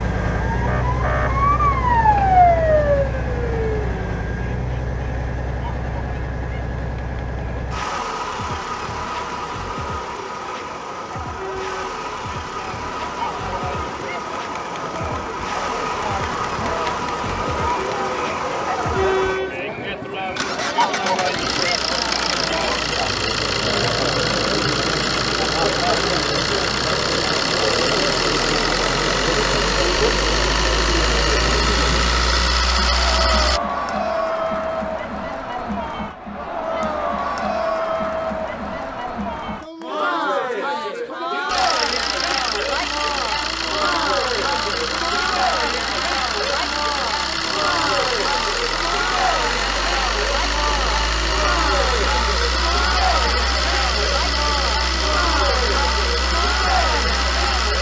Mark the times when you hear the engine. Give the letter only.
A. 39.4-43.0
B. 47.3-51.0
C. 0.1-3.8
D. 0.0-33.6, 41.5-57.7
D.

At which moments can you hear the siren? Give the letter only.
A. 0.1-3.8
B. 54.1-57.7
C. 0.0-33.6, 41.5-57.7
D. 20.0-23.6
A.